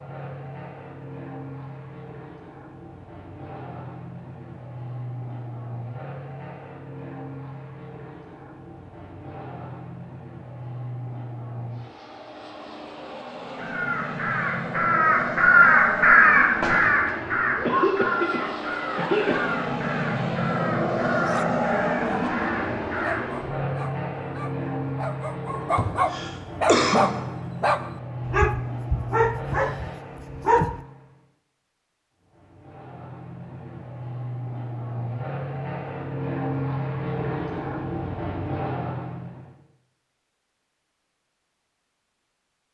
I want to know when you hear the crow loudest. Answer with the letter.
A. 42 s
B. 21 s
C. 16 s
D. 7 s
C.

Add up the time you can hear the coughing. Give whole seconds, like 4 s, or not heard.
3 s.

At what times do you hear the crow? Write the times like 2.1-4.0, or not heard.
13.6-23.4.